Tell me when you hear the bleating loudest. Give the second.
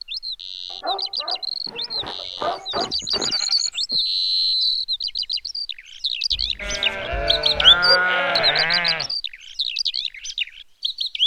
8 s.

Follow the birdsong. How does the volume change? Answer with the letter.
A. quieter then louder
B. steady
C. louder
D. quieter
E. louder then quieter
E.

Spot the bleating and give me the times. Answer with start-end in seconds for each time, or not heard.
1.6-4.0, 6.6-9.1.